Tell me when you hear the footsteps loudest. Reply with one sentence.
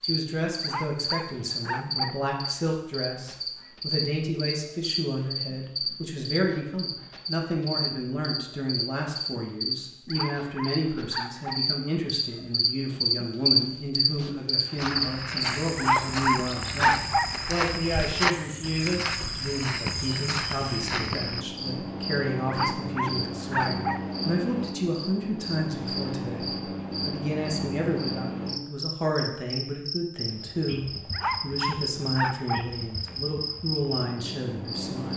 The loudest moment of the footsteps is at 18 seconds.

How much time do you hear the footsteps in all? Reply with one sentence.
You can hear the footsteps for 7 seconds altogether.